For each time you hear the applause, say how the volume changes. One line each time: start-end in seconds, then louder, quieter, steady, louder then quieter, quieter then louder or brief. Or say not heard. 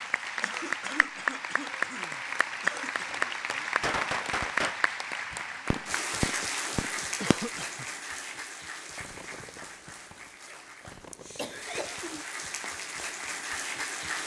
0.0-14.2 quieter then louder.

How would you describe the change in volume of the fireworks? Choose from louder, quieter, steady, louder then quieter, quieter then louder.
quieter.